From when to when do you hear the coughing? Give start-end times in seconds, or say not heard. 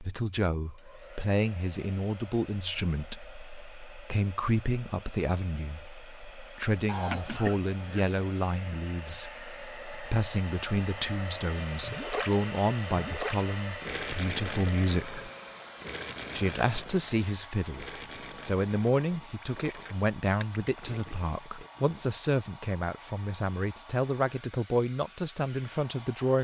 6.8-8.1.